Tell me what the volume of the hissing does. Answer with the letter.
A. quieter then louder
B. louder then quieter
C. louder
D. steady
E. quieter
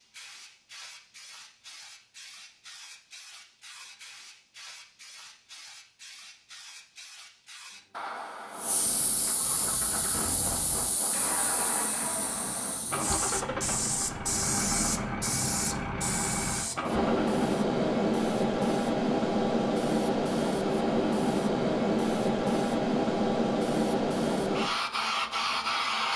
C.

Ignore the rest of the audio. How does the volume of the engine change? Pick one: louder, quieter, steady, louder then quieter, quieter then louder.
louder.